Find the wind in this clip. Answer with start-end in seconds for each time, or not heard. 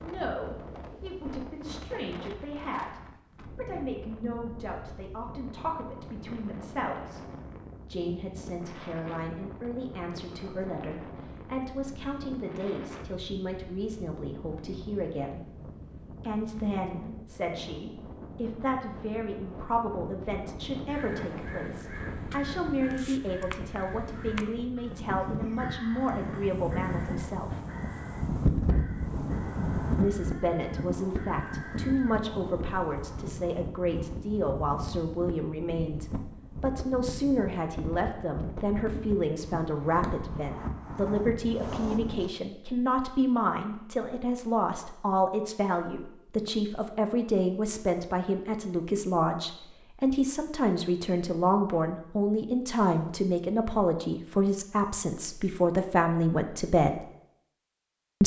0.0-42.3.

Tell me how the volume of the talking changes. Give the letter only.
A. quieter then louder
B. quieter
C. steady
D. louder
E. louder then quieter
D.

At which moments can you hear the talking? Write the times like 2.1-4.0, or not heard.
0.0-7.2, 7.9-15.4, 16.2-27.6, 29.9-57.0.